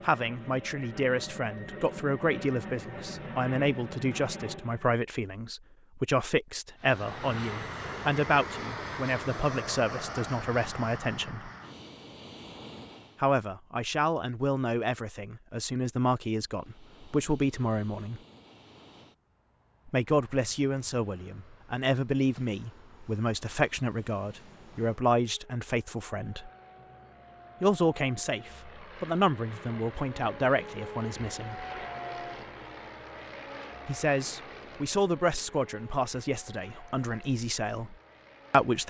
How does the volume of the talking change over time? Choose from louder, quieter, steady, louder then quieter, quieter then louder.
steady.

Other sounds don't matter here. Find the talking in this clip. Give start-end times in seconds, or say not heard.
0.0-11.5, 13.2-18.2, 19.9-26.5, 27.6-31.6, 33.9-38.8.